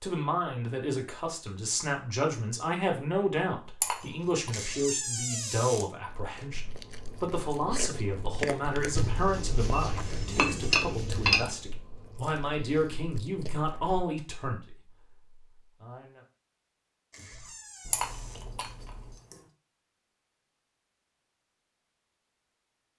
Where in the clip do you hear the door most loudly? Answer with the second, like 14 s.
5 s.